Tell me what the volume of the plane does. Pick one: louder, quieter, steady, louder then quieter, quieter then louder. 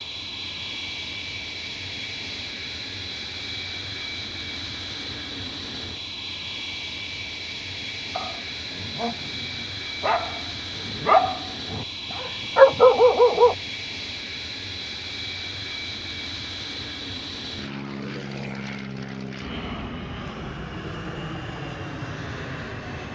steady.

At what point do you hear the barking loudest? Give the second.
13 s.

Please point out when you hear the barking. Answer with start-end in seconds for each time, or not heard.
8.2-13.6.